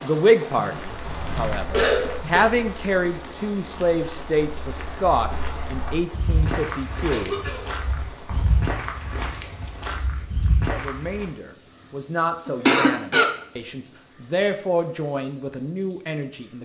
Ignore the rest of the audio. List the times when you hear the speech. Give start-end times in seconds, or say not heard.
0.0-7.3, 10.7-16.6.